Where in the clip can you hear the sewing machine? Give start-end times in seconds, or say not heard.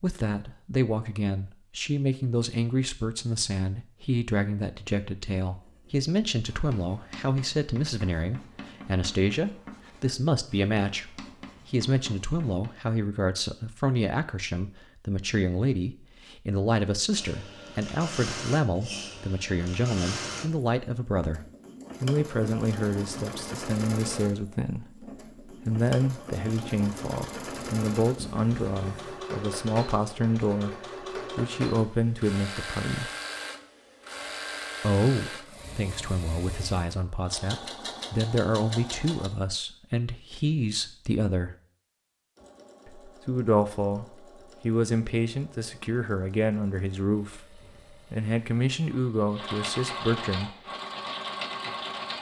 17.1-39.3, 42.4-52.1.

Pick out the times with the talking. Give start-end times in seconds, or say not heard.
0.0-33.1, 34.8-41.5, 42.9-50.5.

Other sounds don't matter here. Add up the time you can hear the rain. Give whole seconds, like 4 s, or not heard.
not heard.